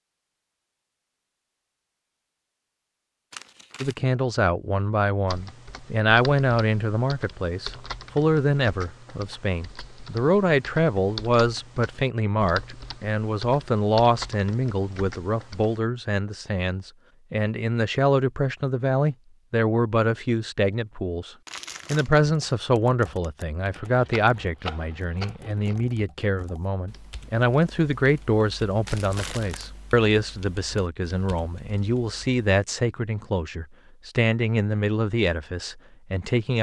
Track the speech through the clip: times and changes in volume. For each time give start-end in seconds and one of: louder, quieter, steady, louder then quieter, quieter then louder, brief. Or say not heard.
3.8-36.5 steady.